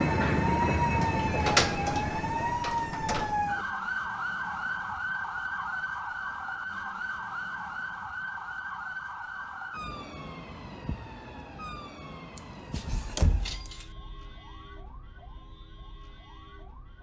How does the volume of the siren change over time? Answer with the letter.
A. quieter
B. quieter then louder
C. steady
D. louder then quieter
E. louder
A.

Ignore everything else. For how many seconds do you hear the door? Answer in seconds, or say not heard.
4 s.